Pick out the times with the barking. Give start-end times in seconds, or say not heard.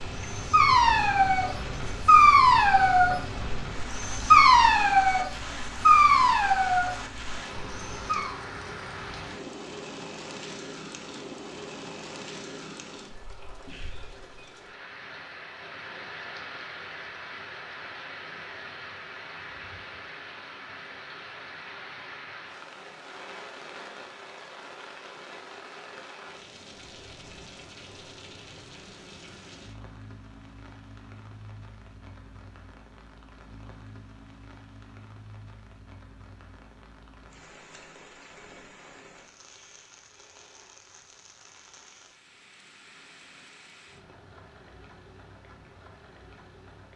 0.2-8.3.